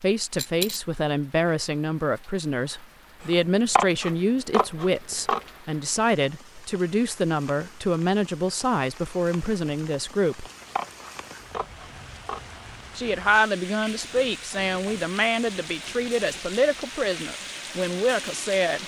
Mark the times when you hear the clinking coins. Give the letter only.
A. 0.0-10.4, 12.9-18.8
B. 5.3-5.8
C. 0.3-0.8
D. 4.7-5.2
C.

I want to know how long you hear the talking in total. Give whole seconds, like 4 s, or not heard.
16 s.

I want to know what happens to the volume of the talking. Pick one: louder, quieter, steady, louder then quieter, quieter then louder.
steady.